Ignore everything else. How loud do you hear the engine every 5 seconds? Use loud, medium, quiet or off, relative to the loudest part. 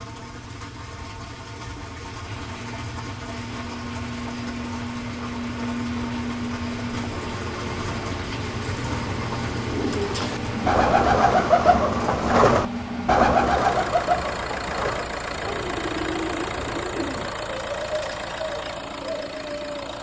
medium, loud, loud, loud.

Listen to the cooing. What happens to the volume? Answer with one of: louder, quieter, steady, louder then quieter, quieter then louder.
quieter.